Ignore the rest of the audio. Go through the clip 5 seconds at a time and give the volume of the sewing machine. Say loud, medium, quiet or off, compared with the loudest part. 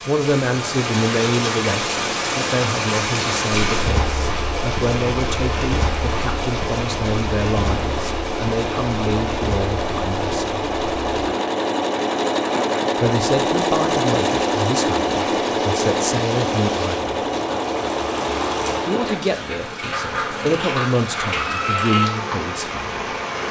medium, medium, loud, loud, off.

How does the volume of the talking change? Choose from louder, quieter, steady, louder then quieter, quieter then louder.
steady.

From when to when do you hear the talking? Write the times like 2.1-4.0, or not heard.
0.1-10.6, 12.9-17.1, 18.9-22.8.